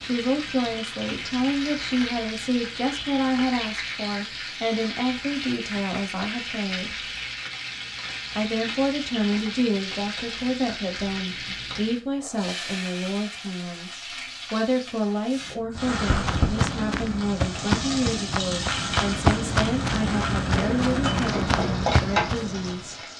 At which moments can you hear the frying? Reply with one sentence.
You can hear the frying from 0.0 to 23.1 s.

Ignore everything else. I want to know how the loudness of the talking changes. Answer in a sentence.
The loudness of the talking stays about the same.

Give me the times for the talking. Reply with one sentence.
The talking can be heard from 0.0 to 7.0 s and from 8.3 to 23.0 s.